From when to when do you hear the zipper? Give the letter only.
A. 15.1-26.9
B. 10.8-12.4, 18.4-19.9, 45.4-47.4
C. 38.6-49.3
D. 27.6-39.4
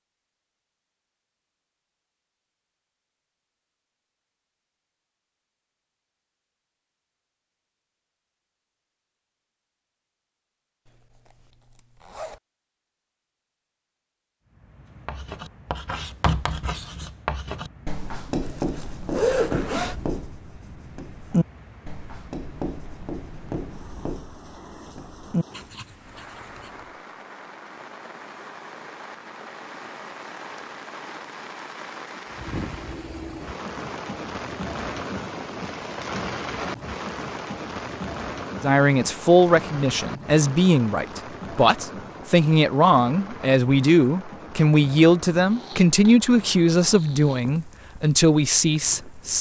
B.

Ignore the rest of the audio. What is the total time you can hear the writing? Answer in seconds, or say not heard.
12 s.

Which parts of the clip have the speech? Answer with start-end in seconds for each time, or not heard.
38.6-49.3.